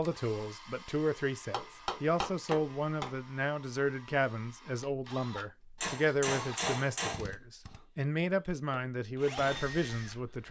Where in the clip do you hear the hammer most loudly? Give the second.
7 s.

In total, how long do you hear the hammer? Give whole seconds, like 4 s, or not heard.
3 s.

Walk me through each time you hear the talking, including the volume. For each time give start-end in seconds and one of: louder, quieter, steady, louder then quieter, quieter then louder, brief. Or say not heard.
0.0-10.4 steady.